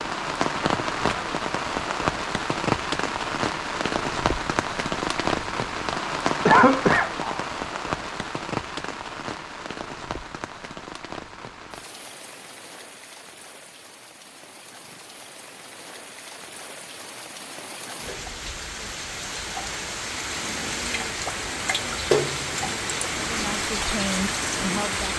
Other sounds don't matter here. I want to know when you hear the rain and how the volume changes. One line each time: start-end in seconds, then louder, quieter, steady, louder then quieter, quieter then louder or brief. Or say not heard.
0.0-25.1 quieter then louder.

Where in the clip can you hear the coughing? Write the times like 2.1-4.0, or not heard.
6.5-7.3.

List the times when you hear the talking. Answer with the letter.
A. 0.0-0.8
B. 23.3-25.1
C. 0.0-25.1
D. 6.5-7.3
B.